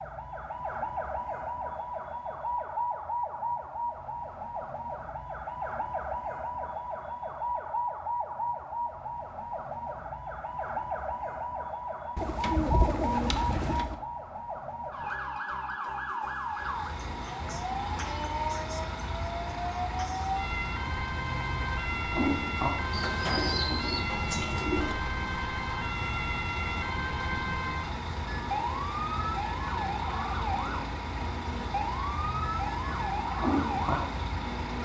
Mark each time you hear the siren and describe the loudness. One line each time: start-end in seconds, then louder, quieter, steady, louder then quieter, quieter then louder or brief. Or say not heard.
0.0-34.8 steady.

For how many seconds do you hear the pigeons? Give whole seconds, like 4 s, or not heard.
4 s.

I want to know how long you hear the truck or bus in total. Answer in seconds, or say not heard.
18 s.